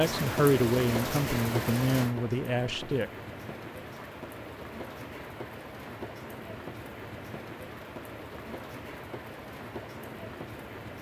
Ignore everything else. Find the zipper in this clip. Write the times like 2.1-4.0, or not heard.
not heard.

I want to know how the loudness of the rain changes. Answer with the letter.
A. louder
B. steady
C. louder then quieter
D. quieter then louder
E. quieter
E.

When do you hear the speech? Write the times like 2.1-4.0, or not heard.
0.0-3.1.